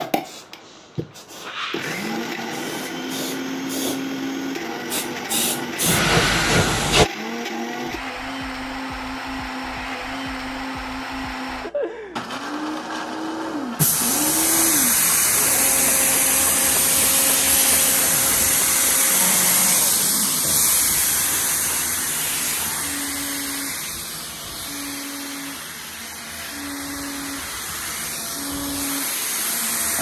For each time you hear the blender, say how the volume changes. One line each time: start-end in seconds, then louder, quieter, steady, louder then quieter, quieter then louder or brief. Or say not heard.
0.0-29.9 quieter.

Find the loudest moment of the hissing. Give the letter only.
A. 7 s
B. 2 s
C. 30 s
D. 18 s
A.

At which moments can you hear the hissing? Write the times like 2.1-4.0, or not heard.
0.0-7.0, 13.8-29.9.